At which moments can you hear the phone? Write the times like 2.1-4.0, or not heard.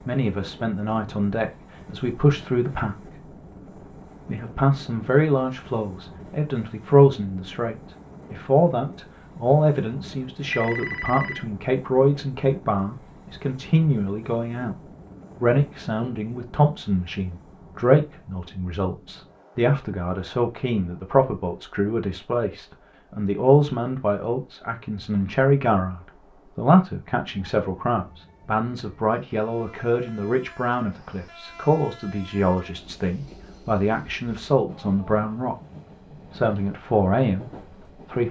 10.5-11.4.